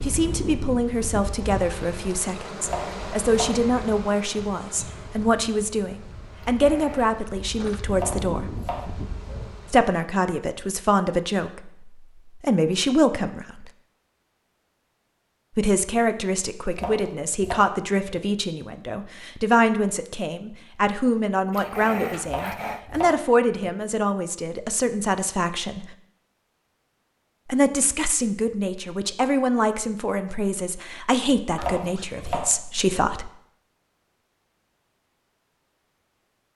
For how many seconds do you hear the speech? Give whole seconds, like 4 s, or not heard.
29 s.